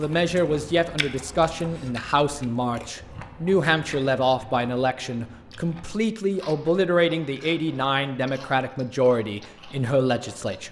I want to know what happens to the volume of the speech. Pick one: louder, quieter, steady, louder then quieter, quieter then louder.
steady.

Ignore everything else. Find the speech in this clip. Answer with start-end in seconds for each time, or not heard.
0.0-10.6.